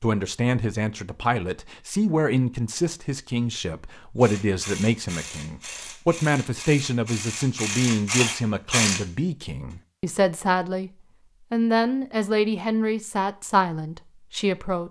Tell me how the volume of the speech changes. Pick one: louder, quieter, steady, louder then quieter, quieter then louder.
steady.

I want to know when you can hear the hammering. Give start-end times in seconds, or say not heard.
not heard.